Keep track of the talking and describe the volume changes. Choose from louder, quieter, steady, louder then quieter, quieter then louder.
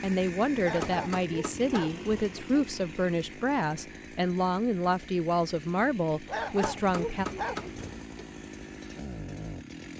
steady.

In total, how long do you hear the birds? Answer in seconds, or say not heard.
not heard.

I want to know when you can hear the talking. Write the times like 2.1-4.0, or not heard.
0.0-7.2.